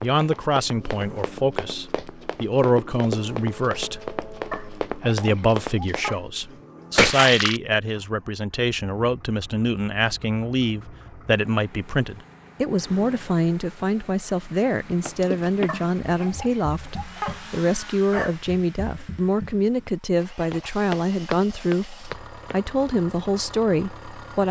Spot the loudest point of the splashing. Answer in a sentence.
The loudest moment of the splashing is at 7 seconds.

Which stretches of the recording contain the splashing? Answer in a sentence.
The splashing can be heard from 7.0 to 7.6 s and from 15.2 to 15.8 s.